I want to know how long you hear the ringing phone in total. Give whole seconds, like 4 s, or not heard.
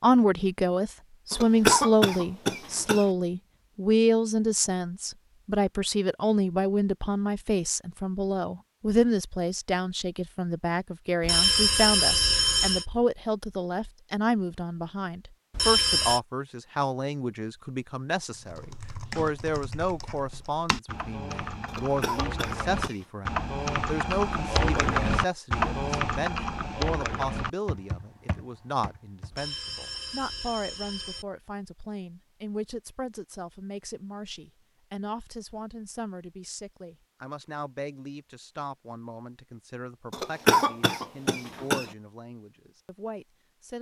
4 s.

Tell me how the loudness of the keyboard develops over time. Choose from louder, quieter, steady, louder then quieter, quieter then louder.
louder then quieter.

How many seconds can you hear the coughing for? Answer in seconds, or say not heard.
5 s.